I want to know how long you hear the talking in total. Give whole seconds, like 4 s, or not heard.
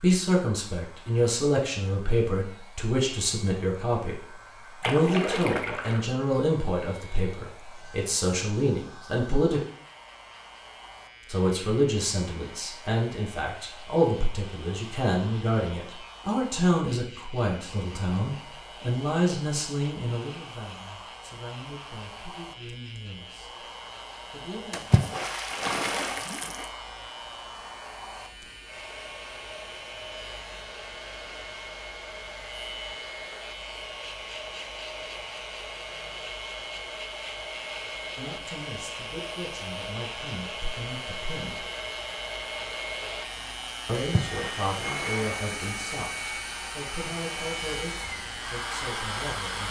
32 s.